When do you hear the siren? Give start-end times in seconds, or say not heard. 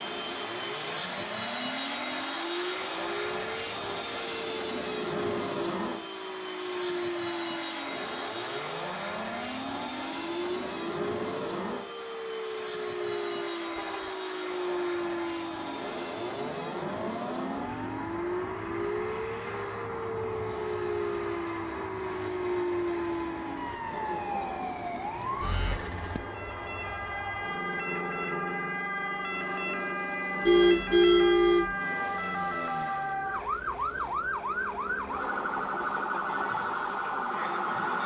0.0-38.0.